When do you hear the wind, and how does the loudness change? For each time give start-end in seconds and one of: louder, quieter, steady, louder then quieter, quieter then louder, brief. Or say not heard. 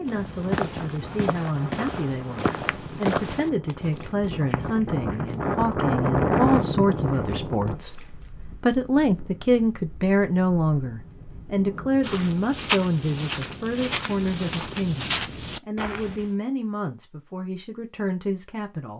0.0-12.2 louder then quieter.